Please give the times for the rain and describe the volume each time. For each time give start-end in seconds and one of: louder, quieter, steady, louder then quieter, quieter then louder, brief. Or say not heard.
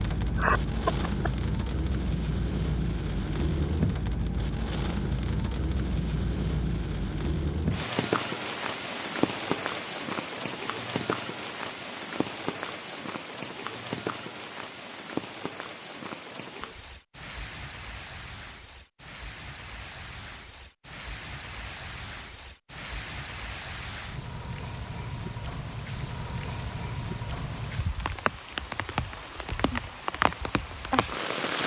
0.0-31.6 quieter then louder.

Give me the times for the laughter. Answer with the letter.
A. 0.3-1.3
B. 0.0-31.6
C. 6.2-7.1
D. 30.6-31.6
A.